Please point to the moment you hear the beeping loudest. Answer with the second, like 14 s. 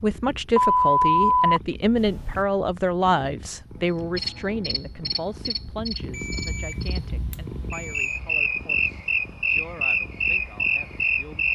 1 s.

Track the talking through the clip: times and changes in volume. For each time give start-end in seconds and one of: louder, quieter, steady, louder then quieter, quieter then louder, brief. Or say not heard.
0.0-11.5 quieter.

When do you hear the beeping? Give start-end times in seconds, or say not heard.
0.6-2.5, 6.1-8.2.